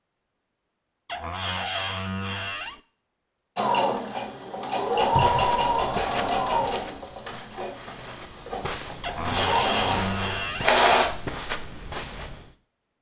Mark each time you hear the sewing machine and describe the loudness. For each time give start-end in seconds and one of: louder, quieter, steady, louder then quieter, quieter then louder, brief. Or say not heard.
3.5-11.1 quieter then louder.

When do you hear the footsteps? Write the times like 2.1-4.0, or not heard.
5.0-12.5.